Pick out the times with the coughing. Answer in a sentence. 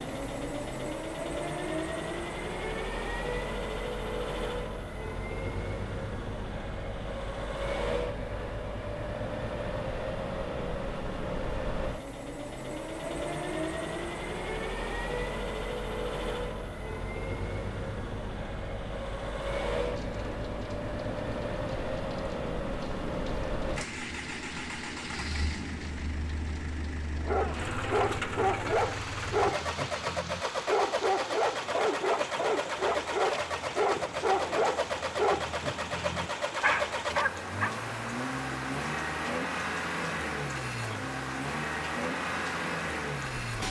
The coughing can't be heard in this clip.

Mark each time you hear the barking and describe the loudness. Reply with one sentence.
The barking can be heard from 27.1 to 37.7 s, at a steady volume.